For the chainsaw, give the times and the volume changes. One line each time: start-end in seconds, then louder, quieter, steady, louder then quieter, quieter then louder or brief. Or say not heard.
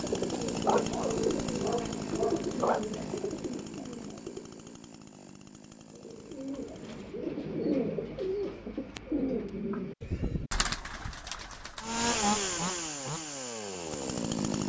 0.0-7.2 quieter
11.8-14.6 brief.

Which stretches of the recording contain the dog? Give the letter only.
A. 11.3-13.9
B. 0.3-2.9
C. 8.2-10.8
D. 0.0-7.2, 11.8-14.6
B.